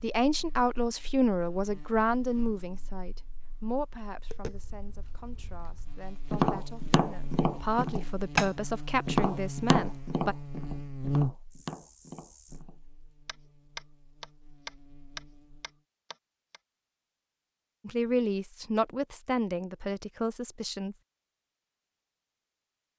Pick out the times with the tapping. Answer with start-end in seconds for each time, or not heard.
4.3-16.6.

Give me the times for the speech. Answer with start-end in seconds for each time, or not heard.
0.0-10.3, 17.9-20.9.